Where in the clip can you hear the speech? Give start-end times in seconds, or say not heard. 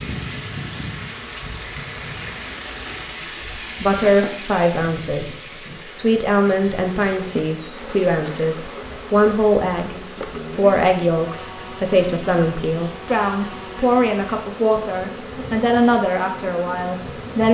3.2-9.9, 10.6-17.4.